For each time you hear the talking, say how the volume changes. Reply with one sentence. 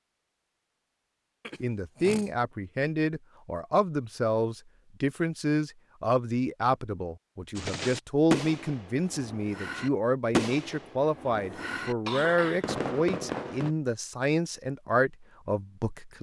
You can hear the talking from 1.6 to 16.1 s, at a steady volume.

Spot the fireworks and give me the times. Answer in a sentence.
The fireworks can be heard from 7.5 to 13.8 s.